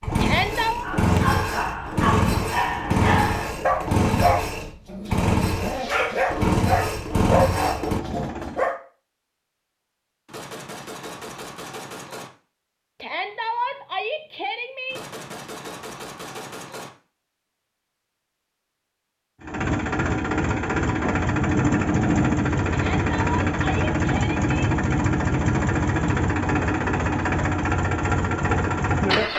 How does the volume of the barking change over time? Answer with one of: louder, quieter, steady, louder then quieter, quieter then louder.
steady.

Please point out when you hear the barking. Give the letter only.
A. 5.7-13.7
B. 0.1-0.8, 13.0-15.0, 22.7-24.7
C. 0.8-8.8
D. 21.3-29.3
C.